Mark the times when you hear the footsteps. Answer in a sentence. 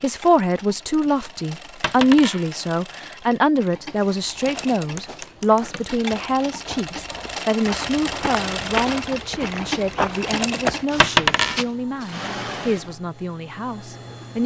You can hear the footsteps from 4.0 to 11.7 s.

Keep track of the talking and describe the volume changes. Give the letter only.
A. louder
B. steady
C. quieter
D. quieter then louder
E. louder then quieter
C.